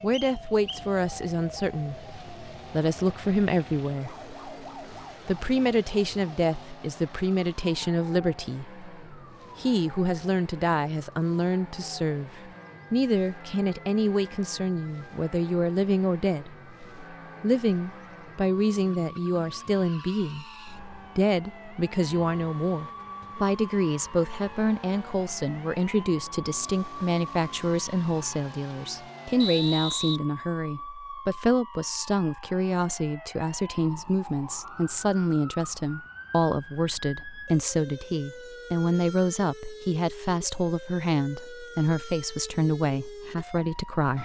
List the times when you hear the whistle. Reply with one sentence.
The whistle can be heard from 0.1 to 0.8 s and from 29.4 to 30.2 s.